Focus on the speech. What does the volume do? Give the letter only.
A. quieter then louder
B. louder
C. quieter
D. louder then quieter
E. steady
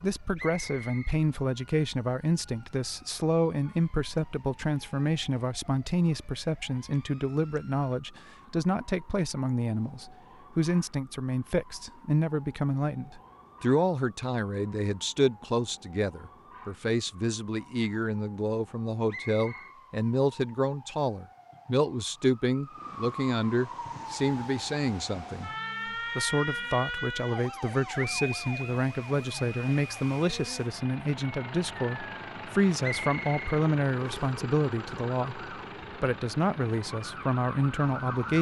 E.